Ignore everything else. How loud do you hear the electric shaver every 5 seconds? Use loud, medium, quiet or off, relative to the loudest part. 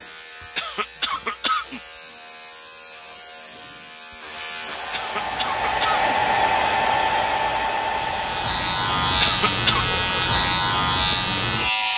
quiet, loud, loud.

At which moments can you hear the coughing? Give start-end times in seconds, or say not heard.
0.6-1.8, 4.9-6.0, 9.2-9.9.